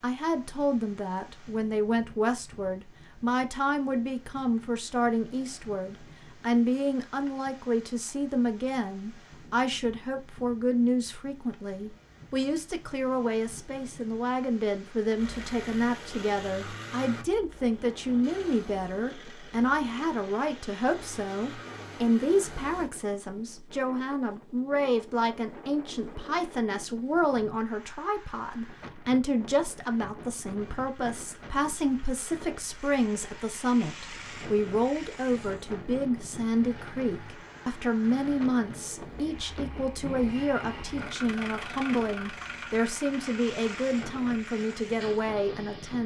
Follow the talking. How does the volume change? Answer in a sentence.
The volume of the talking stays about the same.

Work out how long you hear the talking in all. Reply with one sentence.
You can hear the talking for 46 seconds altogether.